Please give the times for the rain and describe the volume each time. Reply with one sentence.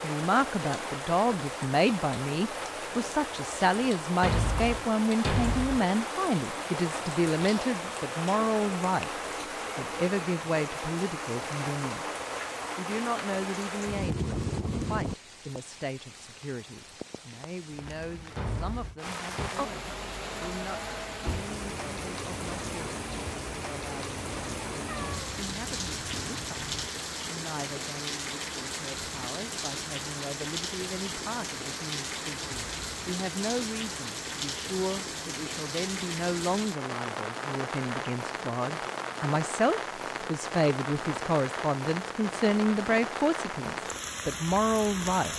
You can hear the rain from 0.0 to 45.3 s, at a steady volume.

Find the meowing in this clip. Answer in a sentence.
The meowing can be heard from 24.9 to 26.9 s.